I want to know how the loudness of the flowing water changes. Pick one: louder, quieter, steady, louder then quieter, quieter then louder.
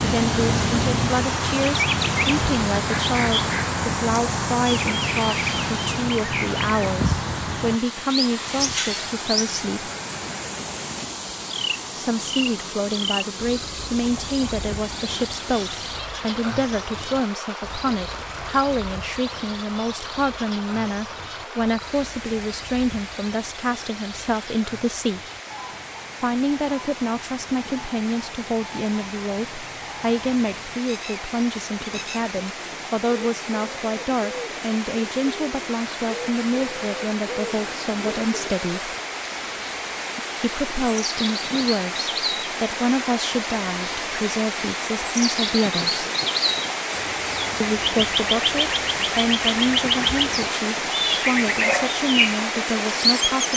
quieter then louder.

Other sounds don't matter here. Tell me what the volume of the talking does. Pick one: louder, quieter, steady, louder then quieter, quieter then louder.
steady.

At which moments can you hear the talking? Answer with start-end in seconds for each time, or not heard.
0.0-9.9, 11.9-25.2, 26.2-39.0, 40.4-46.0, 47.6-53.5.